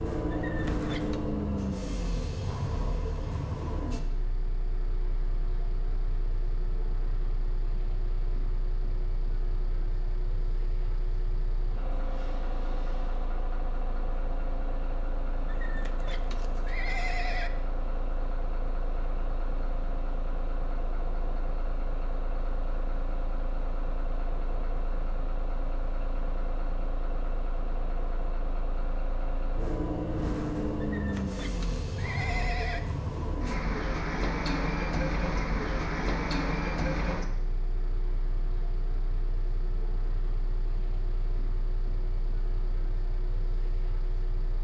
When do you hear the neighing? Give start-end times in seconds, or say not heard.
0.3-1.2, 15.4-17.5, 30.8-32.8.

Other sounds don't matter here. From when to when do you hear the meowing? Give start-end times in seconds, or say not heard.
not heard.